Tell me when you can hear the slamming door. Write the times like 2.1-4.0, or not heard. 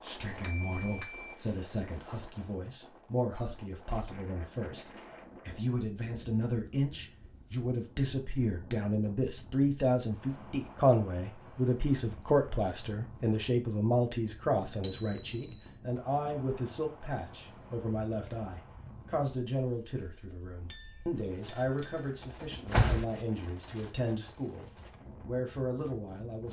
22.4-23.2.